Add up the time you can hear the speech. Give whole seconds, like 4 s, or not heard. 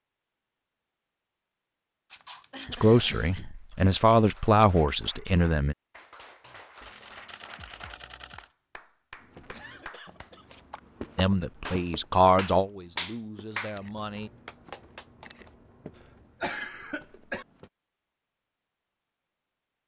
6 s.